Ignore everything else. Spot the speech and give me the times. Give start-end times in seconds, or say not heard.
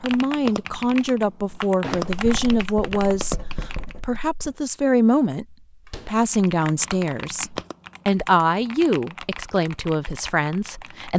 0.0-11.1.